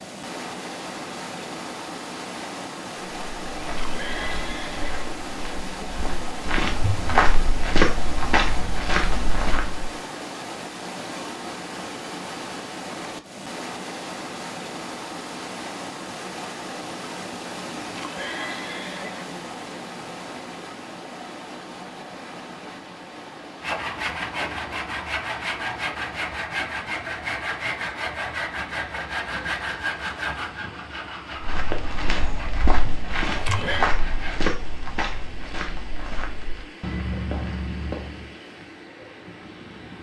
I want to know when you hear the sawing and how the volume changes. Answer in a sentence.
The sawing can be heard from 23.6 to 34.5 s, getting quieter.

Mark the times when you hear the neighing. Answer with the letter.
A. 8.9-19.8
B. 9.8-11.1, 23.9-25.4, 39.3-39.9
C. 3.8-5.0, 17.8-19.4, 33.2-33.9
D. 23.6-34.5
C.